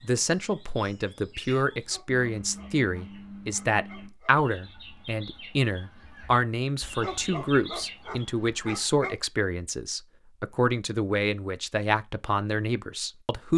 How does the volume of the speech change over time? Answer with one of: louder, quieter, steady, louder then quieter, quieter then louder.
steady.